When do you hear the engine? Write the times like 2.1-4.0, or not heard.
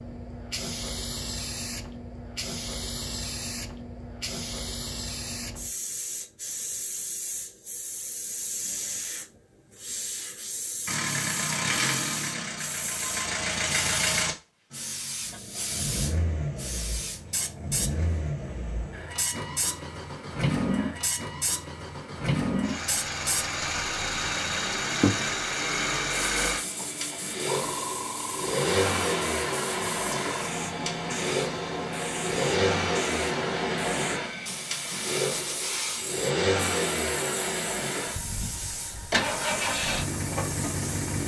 10.8-41.2.